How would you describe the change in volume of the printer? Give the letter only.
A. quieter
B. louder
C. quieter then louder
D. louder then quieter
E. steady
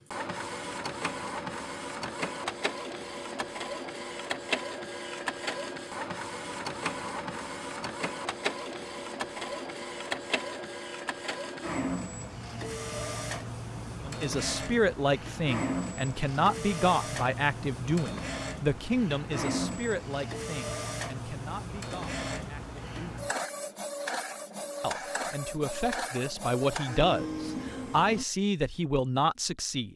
E.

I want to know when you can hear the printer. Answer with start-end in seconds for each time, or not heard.
0.0-28.2.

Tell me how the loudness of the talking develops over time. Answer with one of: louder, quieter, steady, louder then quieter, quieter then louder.
quieter then louder.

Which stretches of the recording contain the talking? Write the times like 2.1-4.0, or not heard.
14.1-23.2, 24.8-29.9.